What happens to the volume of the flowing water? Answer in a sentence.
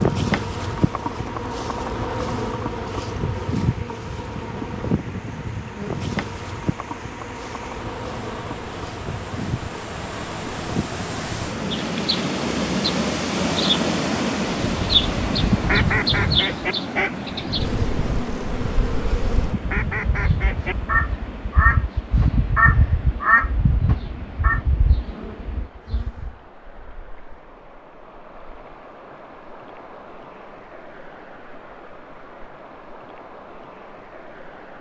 The volume of the flowing water goes up, then down.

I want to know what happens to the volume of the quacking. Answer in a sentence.
The loudness of the quacking goes down, then up.